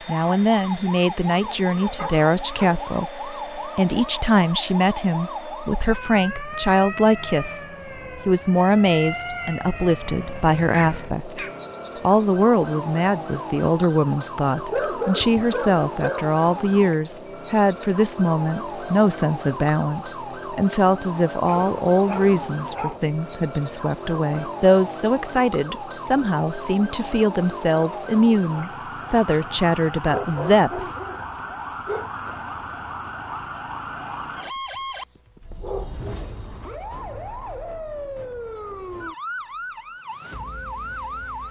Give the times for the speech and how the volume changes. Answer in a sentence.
You can hear the speech from 0.1 to 30.9 s, at a steady volume.